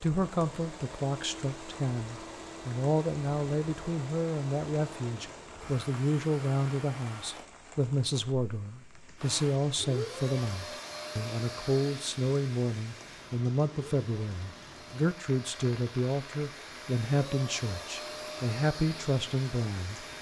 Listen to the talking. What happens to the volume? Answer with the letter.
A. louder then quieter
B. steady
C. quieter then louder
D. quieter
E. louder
B.